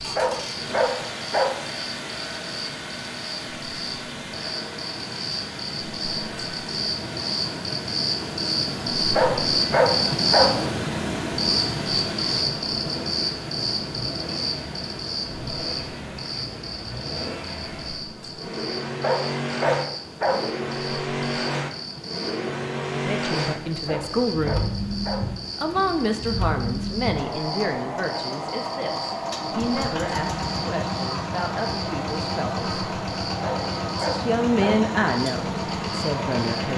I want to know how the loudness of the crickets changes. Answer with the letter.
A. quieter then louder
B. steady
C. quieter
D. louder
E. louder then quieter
E.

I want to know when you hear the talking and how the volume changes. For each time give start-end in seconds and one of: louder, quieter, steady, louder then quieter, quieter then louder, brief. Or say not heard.
22.9-24.6 brief
25.6-32.6 quieter
34.0-36.7 brief.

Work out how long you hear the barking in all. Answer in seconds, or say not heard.
7 s.